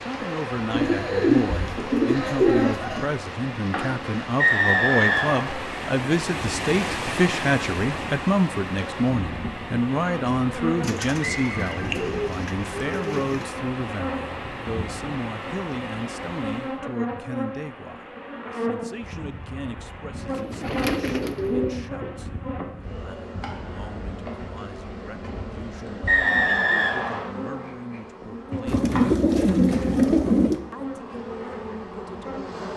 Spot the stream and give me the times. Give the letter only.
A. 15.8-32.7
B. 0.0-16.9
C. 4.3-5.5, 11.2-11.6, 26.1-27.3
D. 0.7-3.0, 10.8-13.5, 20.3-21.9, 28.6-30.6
B.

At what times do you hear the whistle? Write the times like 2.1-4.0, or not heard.
4.3-5.5, 11.2-11.6, 26.1-27.3.